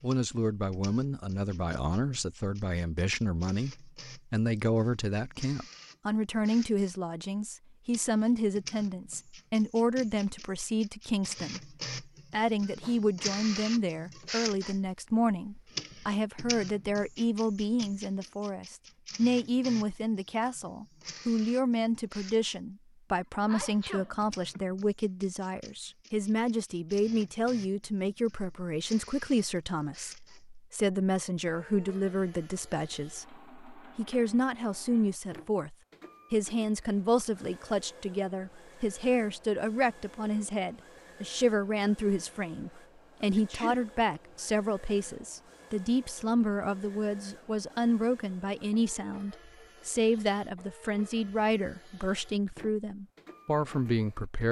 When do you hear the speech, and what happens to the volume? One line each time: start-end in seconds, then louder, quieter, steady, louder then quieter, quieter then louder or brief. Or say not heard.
0.0-54.4 steady.